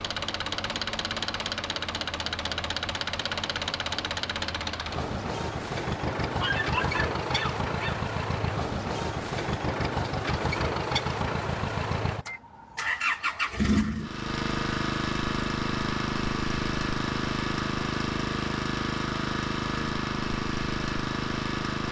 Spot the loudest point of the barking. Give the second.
7 s.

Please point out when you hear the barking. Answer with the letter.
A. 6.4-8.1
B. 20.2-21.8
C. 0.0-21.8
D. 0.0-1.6
A.